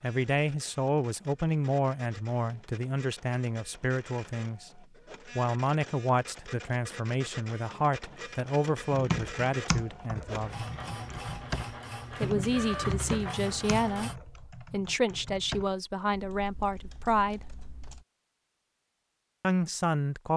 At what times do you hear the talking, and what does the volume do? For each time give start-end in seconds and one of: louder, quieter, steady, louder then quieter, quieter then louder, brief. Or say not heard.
0.0-10.6 steady
12.1-17.6 steady
19.4-20.3 brief.